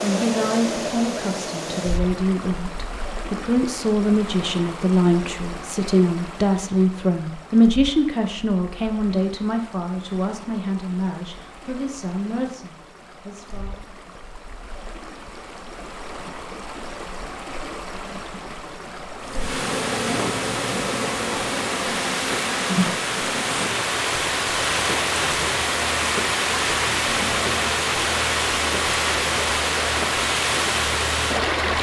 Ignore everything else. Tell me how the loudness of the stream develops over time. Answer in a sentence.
The volume of the stream goes down, then up.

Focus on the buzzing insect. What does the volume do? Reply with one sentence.
The volume of the buzzing insect goes down.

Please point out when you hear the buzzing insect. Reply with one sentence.
The buzzing insect can be heard from 19.1 to 31.7 s.